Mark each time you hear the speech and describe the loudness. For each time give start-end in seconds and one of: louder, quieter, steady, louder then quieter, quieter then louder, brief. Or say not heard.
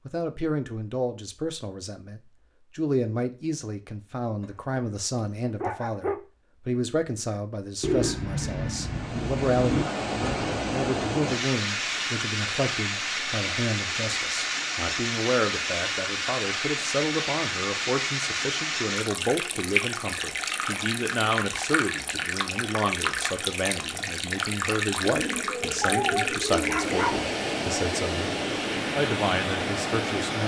0.1-30.4 steady.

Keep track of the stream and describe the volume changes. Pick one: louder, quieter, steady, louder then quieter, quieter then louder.
steady.